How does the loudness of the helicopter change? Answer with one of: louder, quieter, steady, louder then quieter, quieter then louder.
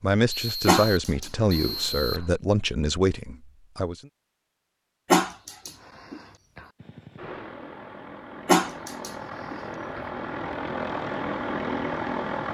louder.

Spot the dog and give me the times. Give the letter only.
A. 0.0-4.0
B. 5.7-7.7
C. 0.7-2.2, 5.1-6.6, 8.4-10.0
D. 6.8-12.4
C.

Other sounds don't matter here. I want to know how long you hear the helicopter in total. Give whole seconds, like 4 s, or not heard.
6 s.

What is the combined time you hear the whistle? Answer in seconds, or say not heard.
2 s.